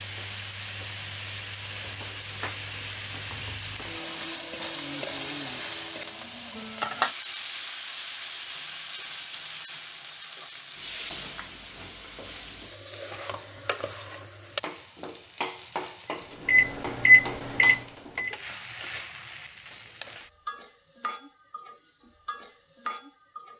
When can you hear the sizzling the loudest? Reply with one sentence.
The volume of the sizzling peaks at 7 seconds.